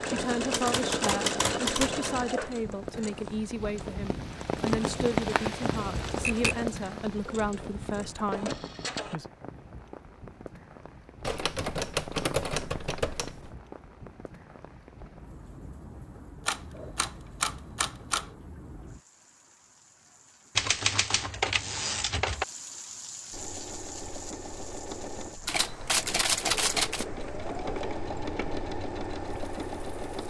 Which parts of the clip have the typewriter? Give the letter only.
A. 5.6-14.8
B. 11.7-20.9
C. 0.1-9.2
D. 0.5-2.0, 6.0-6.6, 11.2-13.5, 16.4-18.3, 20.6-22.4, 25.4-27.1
D.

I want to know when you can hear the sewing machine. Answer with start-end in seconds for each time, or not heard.
0.0-9.2, 23.3-30.2.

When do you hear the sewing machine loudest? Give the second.
1 s.